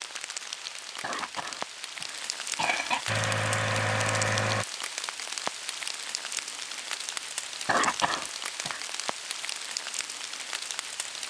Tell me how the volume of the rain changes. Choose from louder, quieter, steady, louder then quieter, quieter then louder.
steady.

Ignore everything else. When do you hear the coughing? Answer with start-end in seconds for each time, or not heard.
1.0-3.0, 7.7-8.8.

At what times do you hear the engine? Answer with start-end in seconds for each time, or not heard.
3.0-4.7.